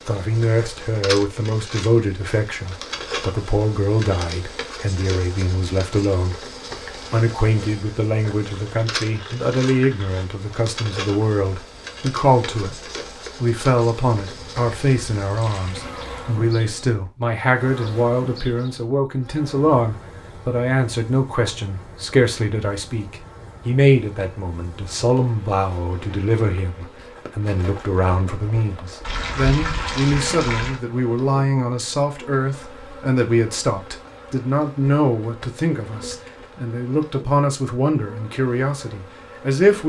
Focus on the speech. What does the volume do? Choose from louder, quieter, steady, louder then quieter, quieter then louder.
steady.